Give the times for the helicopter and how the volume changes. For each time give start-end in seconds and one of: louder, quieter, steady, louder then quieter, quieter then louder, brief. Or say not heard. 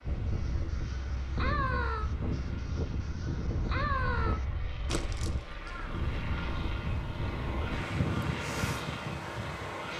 0.0-9.9 louder.